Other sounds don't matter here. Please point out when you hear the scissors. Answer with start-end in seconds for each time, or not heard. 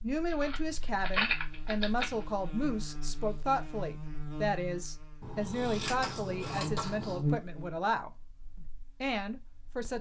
0.3-2.2, 5.2-7.2.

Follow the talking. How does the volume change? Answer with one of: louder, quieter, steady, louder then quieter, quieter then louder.
steady.